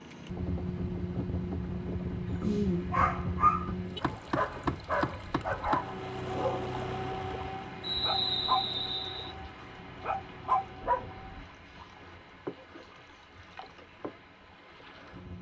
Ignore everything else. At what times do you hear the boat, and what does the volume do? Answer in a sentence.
The boat can be heard from 0.0 to 15.3 s, getting quieter.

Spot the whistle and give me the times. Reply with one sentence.
You can hear the whistle from 7.8 to 9.3 s.